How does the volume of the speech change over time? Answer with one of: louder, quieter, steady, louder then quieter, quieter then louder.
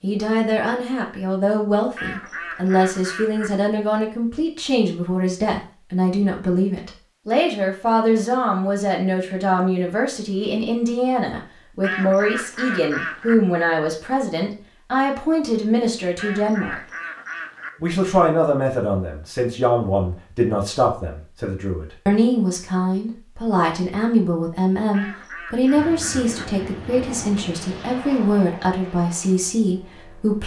steady.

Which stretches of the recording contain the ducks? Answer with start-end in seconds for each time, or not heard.
1.9-3.7, 11.8-13.3, 16.1-17.9, 24.9-26.6.